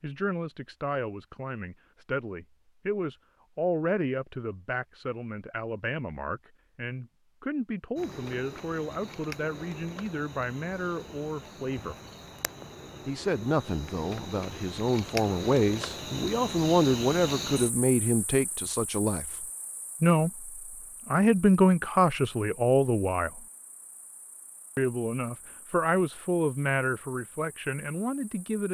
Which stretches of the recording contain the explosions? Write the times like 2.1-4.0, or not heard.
not heard.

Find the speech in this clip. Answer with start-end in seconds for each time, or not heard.
0.0-11.9, 13.1-23.4, 24.8-28.7.